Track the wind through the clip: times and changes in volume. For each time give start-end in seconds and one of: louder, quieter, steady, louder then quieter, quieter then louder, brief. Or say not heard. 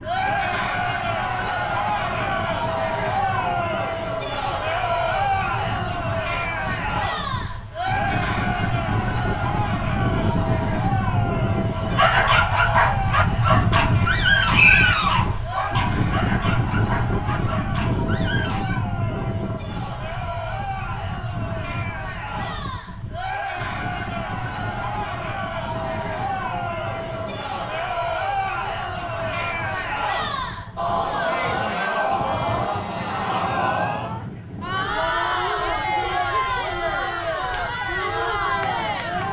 0.0-39.2 louder then quieter.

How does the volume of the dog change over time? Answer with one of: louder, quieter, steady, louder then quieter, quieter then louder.
quieter.